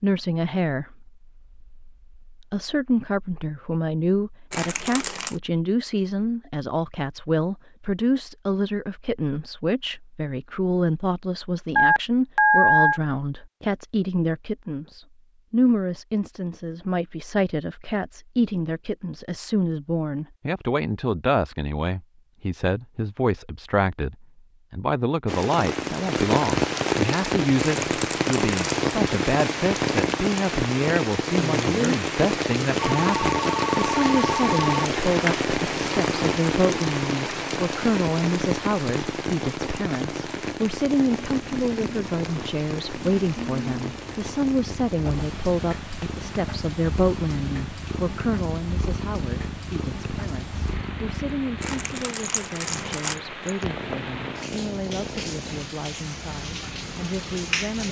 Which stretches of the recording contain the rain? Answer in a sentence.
The rain can be heard from 25.2 to 57.8 s.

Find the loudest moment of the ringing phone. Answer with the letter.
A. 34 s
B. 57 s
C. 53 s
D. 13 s
D.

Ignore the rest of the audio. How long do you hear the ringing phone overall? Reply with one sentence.
You can hear the ringing phone for 4 seconds altogether.